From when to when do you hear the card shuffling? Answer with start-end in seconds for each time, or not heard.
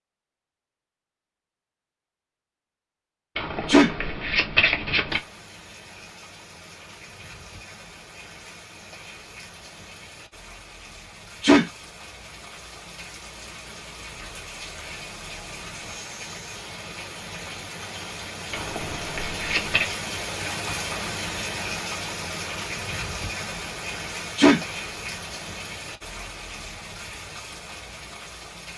3.4-5.2, 18.5-19.9.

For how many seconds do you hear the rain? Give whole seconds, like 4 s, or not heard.
24 s.